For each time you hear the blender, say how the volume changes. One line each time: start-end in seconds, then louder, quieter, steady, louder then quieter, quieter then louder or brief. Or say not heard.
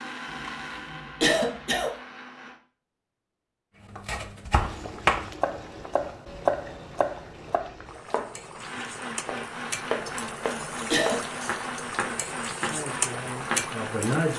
0.0-2.6 brief
8.6-14.3 steady.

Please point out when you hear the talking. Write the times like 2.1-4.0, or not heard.
12.6-14.3.